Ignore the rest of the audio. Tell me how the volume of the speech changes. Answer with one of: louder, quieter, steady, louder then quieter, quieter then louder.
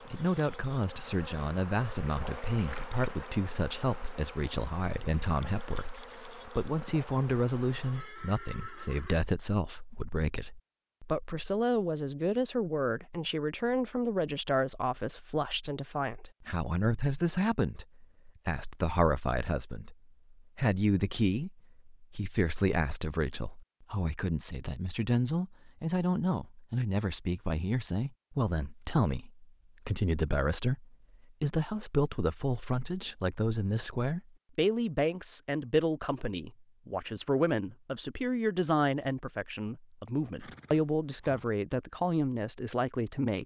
steady.